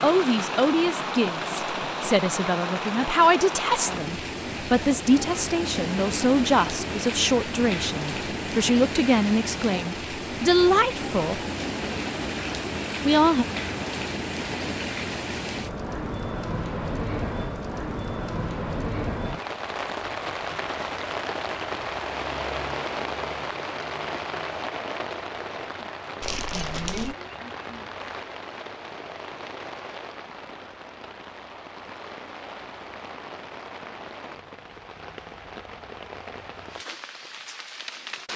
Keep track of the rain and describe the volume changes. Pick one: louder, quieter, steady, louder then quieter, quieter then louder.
quieter.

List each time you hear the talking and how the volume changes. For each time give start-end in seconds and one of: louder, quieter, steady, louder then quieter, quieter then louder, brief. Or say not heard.
0.0-11.4 steady
13.0-13.4 brief.